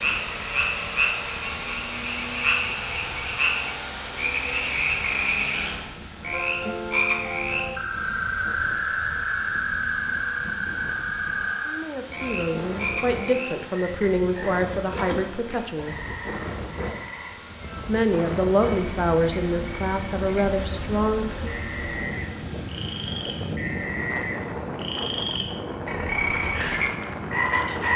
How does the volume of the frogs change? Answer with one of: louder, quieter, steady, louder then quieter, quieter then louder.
quieter then louder.